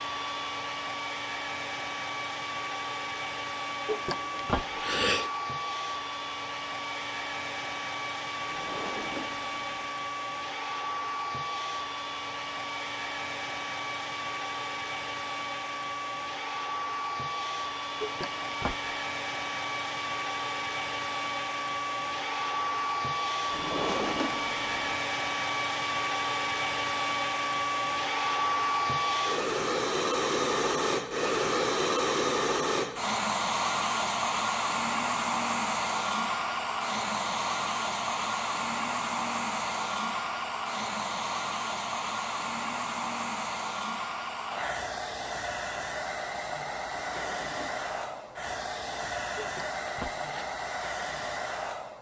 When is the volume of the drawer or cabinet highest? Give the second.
24 s.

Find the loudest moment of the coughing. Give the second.
5 s.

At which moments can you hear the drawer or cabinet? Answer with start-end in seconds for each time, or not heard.
8.4-9.9, 23.5-25.0, 46.9-48.4.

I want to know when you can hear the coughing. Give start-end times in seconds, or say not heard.
3.9-5.3, 18.0-18.9, 49.4-50.5.